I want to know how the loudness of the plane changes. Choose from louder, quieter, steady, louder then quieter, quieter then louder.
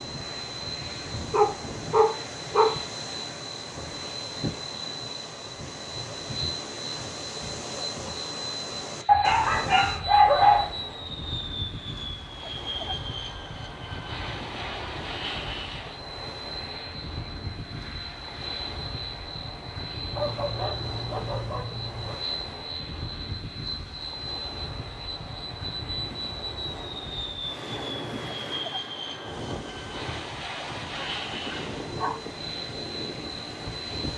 steady.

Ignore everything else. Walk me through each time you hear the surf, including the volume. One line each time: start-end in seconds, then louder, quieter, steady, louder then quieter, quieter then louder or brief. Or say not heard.
0.0-34.1 steady.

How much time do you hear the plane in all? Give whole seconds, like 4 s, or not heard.
34 s.